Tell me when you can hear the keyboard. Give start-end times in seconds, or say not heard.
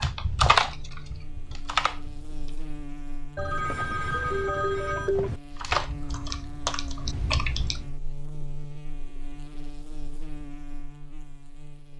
0.0-2.5, 5.5-7.8.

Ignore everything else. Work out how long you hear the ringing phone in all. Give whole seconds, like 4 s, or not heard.
2 s.